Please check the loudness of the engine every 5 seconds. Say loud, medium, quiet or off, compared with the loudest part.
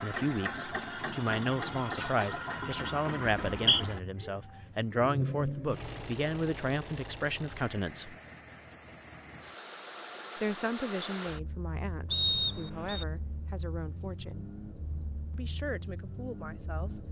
loud, loud, medium, medium.